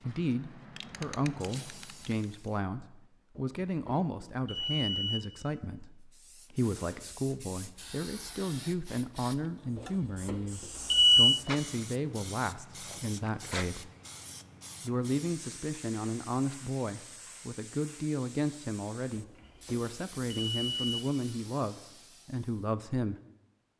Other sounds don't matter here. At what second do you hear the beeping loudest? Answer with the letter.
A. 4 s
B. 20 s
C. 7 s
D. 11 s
D.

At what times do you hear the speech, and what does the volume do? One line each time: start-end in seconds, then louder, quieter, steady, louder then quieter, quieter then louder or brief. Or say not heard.
0.0-13.9 steady
14.8-23.1 steady.